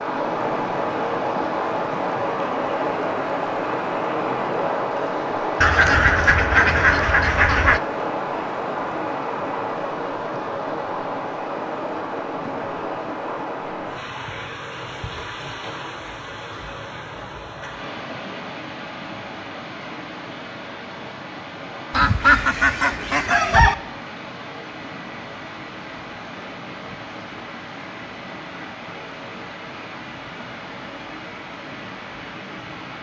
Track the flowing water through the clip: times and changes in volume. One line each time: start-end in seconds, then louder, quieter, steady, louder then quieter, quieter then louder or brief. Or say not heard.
0.0-32.9 quieter.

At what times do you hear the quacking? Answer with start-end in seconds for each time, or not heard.
5.6-7.8, 21.9-23.8.